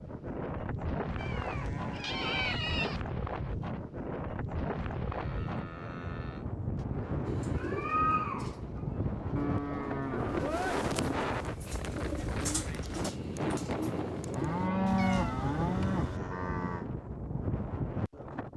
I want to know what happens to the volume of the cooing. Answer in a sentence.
The volume of the cooing goes down, then up.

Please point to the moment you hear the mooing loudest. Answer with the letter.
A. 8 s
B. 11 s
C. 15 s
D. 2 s
C.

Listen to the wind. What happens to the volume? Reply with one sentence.
The volume of the wind stays about the same.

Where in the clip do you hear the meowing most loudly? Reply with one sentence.
The loudest moment of the meowing is at 8 seconds.